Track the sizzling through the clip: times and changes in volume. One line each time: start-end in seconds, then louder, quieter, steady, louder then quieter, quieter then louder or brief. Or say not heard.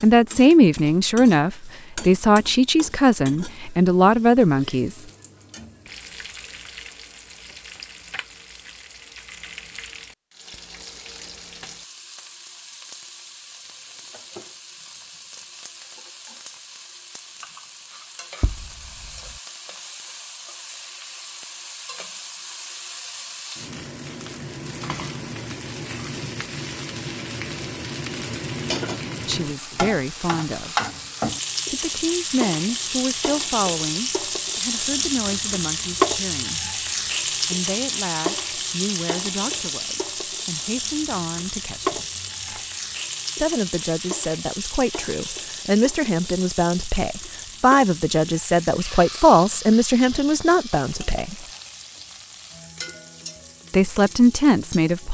0.0-55.0 louder then quieter.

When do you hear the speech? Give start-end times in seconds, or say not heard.
0.0-5.0, 29.2-30.7, 31.7-36.7, 37.5-42.0, 43.4-51.4, 53.7-55.0.